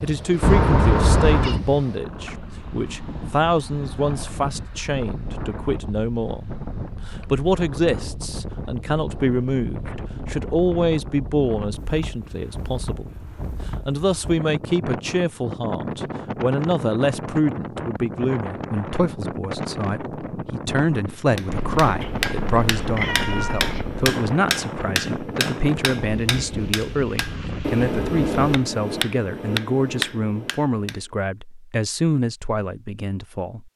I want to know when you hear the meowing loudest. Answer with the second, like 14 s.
1 s.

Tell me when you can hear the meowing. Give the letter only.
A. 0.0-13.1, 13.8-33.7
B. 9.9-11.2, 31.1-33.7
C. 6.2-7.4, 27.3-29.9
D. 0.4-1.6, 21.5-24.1
D.